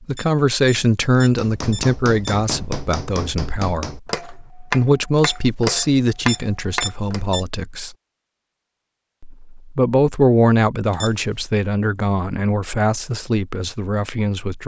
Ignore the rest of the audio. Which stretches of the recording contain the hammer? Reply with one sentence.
The hammer can be heard from 1.2 to 7.2 s.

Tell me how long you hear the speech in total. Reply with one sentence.
You can hear the speech for 13 seconds altogether.